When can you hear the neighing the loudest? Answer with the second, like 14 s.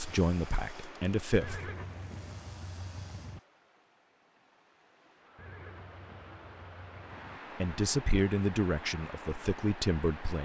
2 s.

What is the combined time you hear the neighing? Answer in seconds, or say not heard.
4 s.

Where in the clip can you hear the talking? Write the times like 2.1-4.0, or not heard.
0.0-1.7, 7.6-10.4.